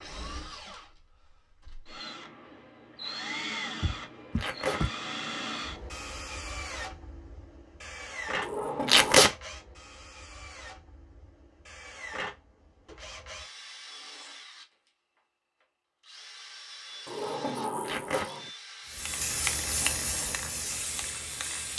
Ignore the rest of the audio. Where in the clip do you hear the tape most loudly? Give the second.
9 s.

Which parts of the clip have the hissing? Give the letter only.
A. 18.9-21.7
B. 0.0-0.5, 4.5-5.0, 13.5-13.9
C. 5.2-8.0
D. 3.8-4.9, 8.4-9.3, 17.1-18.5
A.